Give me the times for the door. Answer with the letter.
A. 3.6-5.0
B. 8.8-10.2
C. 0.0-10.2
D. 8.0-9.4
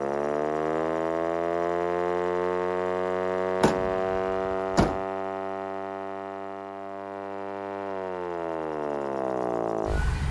A.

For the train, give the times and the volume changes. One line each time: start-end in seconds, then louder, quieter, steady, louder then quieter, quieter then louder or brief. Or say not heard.
not heard.